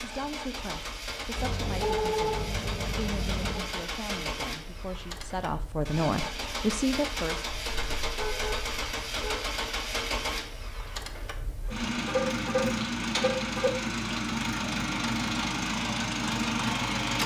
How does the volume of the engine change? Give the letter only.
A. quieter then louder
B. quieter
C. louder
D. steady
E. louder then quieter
C.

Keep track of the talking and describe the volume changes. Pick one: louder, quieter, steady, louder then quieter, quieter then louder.
louder.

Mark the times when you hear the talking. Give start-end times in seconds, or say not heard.
0.0-7.5.